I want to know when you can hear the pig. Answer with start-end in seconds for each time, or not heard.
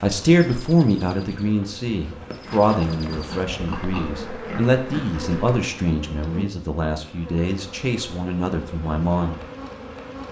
2.4-5.0.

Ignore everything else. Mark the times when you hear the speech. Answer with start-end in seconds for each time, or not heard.
0.0-9.4.